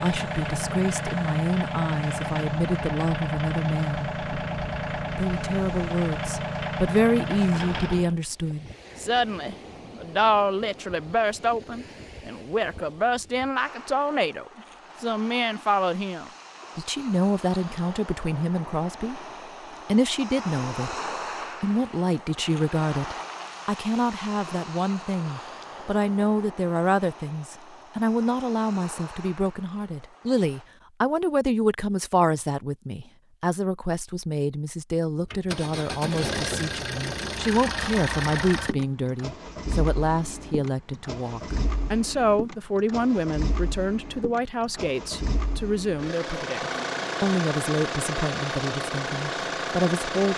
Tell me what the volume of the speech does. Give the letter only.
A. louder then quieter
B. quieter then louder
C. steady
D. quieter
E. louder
C.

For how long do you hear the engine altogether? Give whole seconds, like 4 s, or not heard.
23 s.